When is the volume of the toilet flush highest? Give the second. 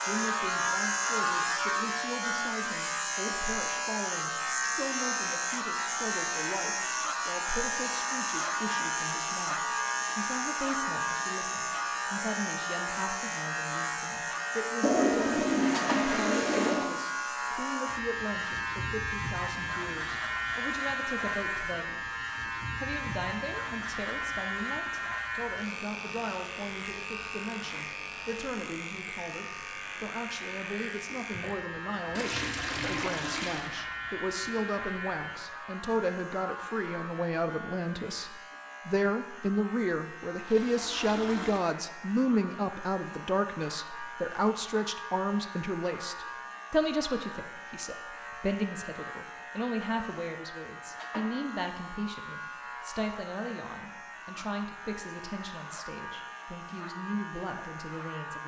15 s.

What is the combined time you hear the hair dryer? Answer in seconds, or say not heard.
not heard.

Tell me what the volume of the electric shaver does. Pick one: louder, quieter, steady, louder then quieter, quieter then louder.
quieter.